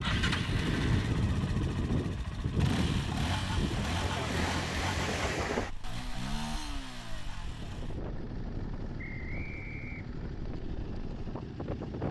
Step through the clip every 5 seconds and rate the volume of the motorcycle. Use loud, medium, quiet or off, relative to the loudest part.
loud, medium, medium.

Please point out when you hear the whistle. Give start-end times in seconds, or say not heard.
8.9-10.2.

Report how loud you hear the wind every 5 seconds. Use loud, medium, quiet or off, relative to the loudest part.
loud, medium, medium.